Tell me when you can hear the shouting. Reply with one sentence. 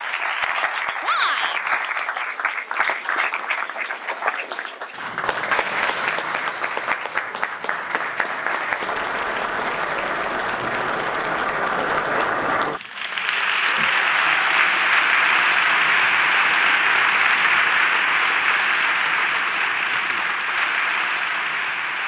You can hear the shouting from 1.0 to 1.6 s.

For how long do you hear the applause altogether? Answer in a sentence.
You can hear the applause for 22 seconds altogether.